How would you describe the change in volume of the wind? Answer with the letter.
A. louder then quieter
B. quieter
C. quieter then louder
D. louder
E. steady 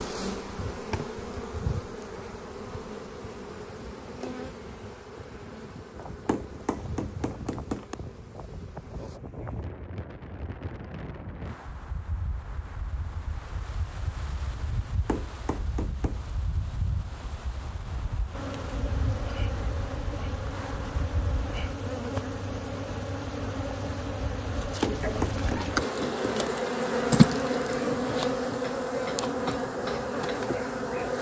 D.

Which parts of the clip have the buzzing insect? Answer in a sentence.
The buzzing insect can be heard from 0.0 to 9.2 s and from 18.3 to 31.1 s.